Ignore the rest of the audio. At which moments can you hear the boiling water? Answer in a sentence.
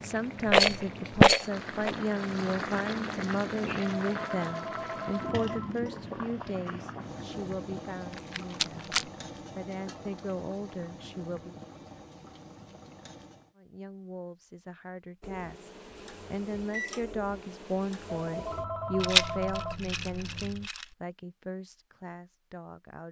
You can hear the boiling water from 0.0 to 13.6 s.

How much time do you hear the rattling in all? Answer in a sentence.
The rattling can be heard for 4 seconds in total.